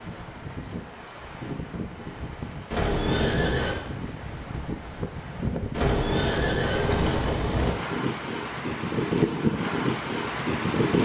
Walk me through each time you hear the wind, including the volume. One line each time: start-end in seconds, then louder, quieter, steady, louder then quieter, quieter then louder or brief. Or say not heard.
0.0-11.0 louder.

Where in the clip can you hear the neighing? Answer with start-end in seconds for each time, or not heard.
2.7-3.8, 5.7-7.8.